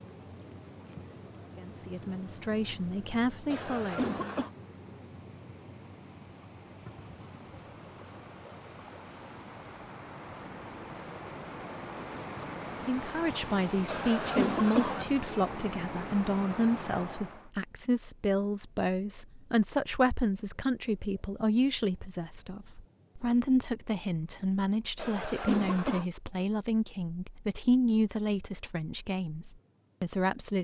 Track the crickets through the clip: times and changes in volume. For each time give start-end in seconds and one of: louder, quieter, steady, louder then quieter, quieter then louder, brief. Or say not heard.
0.0-30.5 quieter.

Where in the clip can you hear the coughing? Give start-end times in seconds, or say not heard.
3.5-4.5, 13.8-15.1, 24.9-26.1.